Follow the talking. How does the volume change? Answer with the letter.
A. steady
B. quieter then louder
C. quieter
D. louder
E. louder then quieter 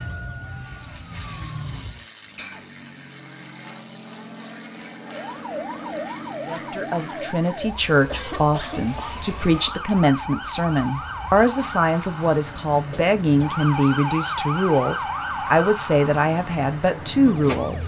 A.